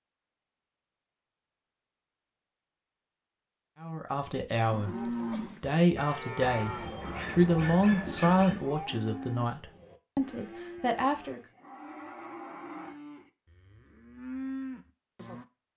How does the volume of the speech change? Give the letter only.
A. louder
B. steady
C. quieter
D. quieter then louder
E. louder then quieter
E.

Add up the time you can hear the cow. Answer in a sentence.
You can hear the cow for 11 seconds altogether.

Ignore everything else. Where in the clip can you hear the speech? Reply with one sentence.
The speech can be heard from 3.8 to 11.4 s.